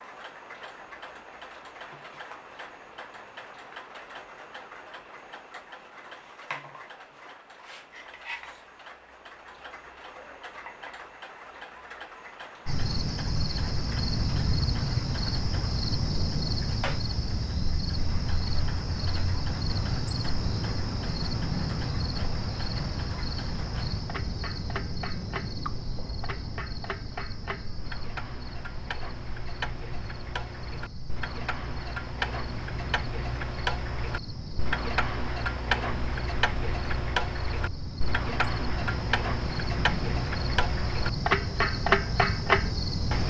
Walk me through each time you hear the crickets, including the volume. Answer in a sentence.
You can hear the crickets from 12.7 to 43.2 s, getting quieter then louder.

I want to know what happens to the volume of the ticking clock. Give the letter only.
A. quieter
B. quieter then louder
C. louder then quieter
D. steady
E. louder
E.